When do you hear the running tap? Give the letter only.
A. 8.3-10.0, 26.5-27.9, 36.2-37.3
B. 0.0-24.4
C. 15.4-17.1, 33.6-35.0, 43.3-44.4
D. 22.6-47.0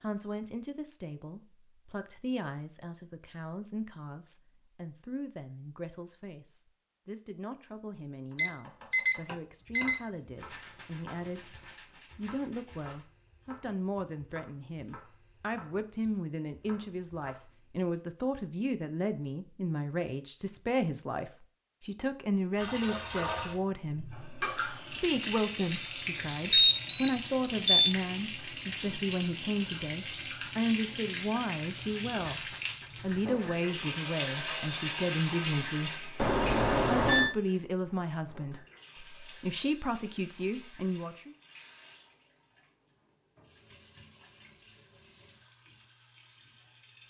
D.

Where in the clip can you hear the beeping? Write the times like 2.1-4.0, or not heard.
8.3-10.0, 26.5-27.9, 36.2-37.3.